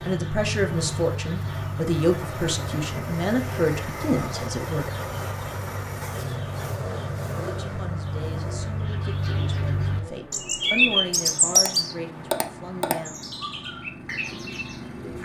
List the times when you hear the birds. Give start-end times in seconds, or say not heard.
0.0-15.1.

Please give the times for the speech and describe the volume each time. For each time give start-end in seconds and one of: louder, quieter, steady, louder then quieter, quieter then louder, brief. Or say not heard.
0.0-4.8 steady
7.3-13.2 louder then quieter.